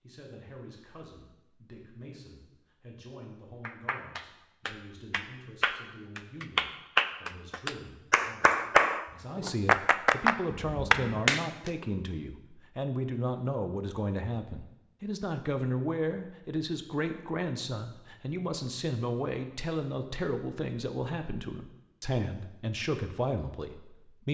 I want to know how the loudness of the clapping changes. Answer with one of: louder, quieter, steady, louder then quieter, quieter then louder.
louder.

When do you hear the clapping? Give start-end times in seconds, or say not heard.
3.6-11.7.